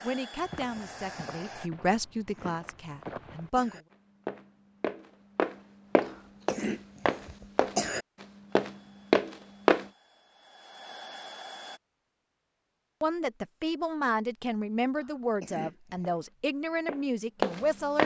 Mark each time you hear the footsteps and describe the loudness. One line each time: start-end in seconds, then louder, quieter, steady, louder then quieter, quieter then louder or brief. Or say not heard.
0.3-9.8 louder
16.0-18.0 brief.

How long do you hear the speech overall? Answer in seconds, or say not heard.
9 s.